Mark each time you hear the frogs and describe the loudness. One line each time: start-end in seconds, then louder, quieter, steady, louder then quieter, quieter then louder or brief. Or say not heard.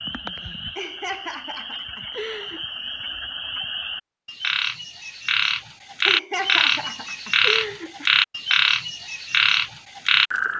0.0-10.5 louder.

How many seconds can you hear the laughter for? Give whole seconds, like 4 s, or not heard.
4 s.